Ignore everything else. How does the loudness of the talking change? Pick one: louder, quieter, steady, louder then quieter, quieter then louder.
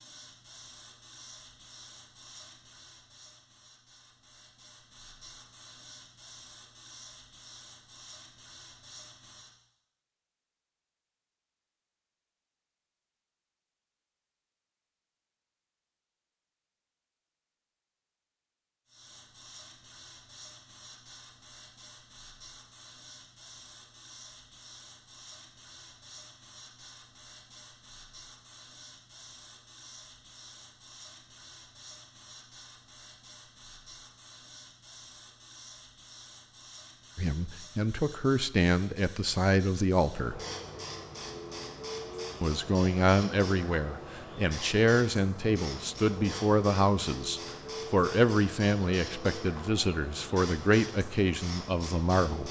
steady.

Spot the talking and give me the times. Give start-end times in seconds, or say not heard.
37.1-40.4, 42.4-52.4.